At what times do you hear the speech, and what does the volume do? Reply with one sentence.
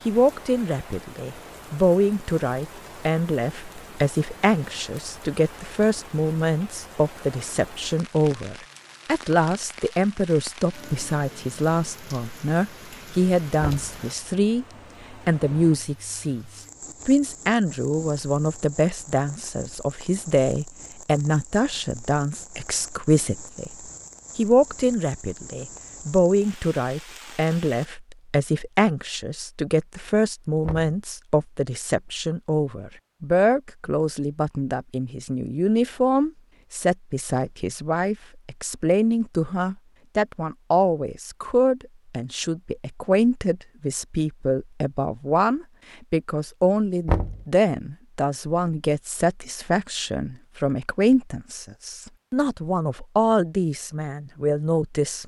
The speech can be heard from 0.1 to 23.8 s, at a steady volume; and from 24.4 to 55.2 s, at a steady volume.